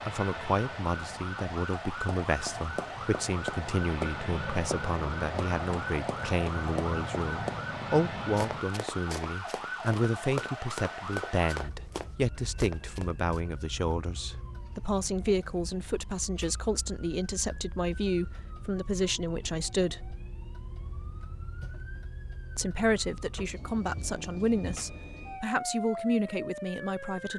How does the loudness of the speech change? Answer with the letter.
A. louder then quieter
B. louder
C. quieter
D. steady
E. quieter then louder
D.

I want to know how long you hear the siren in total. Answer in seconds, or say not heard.
27 s.